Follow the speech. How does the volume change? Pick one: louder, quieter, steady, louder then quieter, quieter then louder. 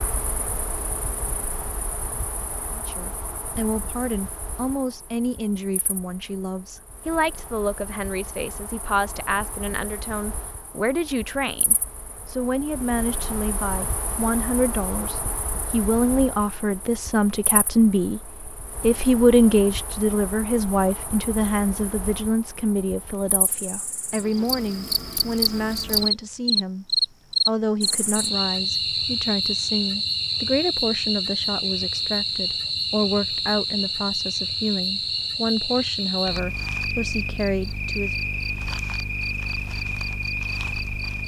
louder then quieter.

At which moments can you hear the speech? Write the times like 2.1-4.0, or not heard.
2.8-26.9, 27.4-38.1.